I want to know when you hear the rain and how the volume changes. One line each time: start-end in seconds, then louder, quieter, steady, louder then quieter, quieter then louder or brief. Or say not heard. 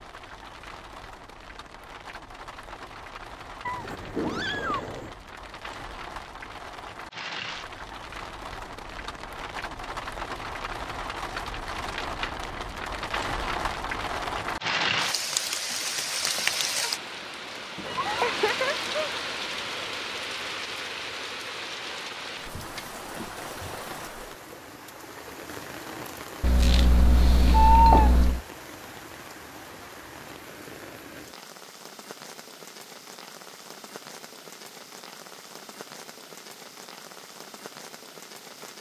0.0-38.7 louder then quieter.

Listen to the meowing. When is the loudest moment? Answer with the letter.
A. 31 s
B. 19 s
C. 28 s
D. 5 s
C.